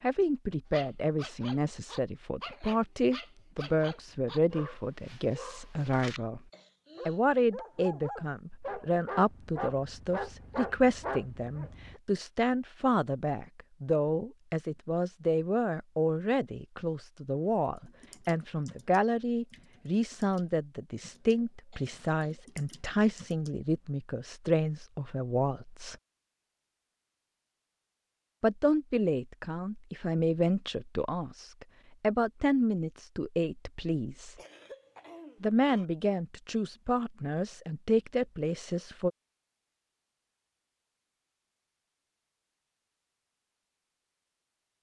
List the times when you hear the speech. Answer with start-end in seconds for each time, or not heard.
0.0-6.4, 7.0-25.9, 28.4-34.4, 35.4-39.1.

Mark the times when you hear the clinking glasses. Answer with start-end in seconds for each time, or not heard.
not heard.